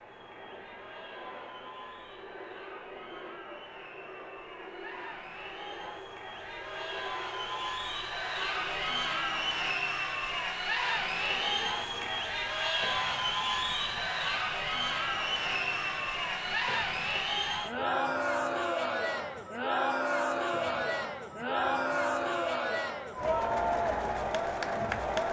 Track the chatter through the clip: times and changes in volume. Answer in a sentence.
The chatter can be heard from 0.0 to 25.2 s, getting louder.